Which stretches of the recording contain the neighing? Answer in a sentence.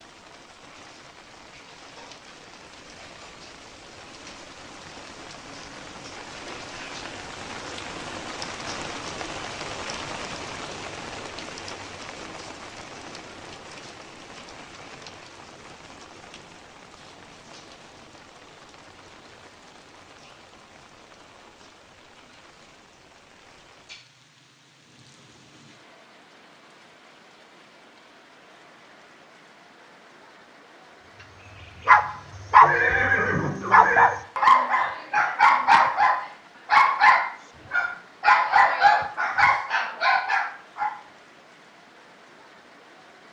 You can hear the neighing from 32.6 to 34.1 s.